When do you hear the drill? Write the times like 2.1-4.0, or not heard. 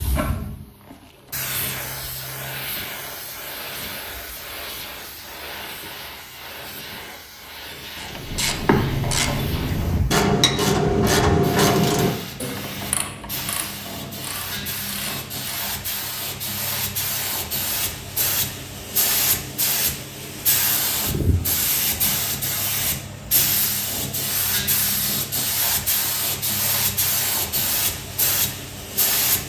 not heard.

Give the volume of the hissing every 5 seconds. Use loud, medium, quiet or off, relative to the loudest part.
medium, medium, medium, loud, loud, loud.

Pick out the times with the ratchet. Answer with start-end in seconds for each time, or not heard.
8.0-15.7.